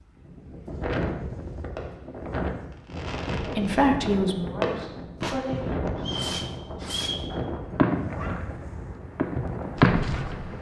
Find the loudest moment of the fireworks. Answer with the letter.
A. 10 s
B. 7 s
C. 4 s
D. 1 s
A.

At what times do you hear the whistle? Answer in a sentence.
You can hear the whistle from 6.0 to 7.3 s.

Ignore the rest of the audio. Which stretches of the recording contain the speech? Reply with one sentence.
The speech can be heard from 3.4 to 5.8 s.